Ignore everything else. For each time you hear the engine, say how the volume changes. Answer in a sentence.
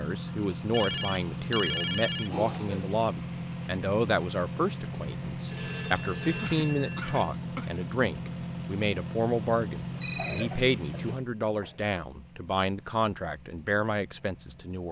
You can hear the engine from 0.0 to 14.8 s, getting quieter.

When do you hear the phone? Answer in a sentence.
The phone can be heard from 0.7 to 2.4 s, from 5.5 to 7.3 s and from 9.9 to 10.5 s.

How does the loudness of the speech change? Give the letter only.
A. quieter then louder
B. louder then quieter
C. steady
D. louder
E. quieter
C.